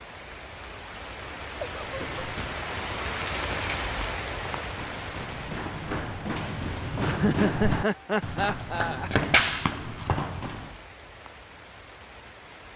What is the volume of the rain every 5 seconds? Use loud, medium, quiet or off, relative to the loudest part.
loud, medium, quiet.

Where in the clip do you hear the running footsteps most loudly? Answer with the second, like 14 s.
9 s.